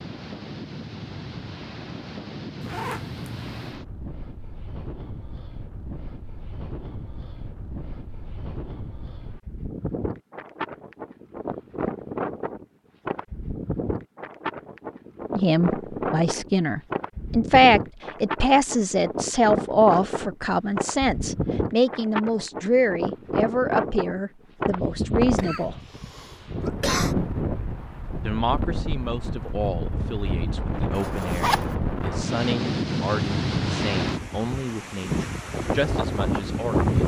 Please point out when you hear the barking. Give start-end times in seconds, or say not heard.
not heard.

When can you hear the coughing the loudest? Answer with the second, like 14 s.
27 s.